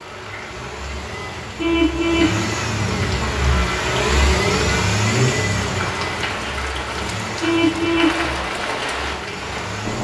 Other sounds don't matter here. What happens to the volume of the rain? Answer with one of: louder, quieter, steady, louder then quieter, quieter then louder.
louder.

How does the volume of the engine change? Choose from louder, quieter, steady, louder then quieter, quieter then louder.
louder then quieter.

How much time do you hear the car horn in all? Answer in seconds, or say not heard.
2 s.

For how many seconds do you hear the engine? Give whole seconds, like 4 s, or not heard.
10 s.